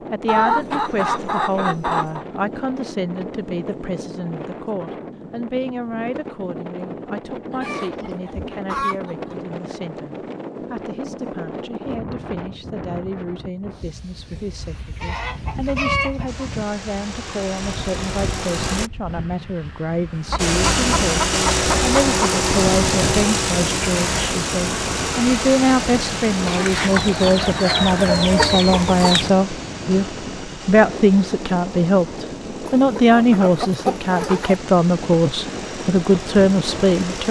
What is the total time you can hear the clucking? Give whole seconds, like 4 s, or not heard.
12 s.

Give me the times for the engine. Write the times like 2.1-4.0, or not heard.
16.2-18.9, 20.4-37.2.